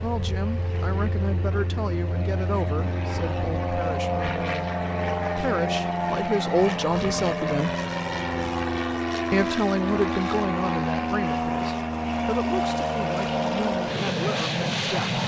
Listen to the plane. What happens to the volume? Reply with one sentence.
The loudness of the plane goes up.